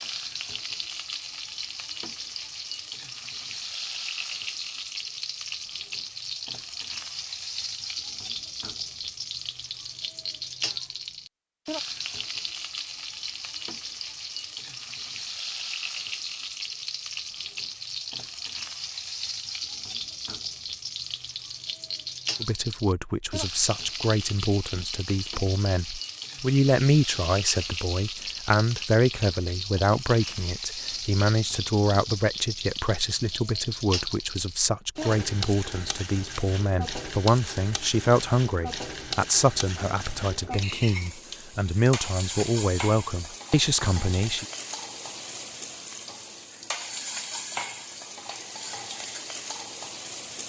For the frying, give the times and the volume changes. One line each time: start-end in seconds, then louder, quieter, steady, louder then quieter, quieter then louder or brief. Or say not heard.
0.0-50.4 steady.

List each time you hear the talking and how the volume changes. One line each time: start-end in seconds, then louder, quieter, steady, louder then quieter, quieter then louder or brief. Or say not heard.
22.4-44.5 steady.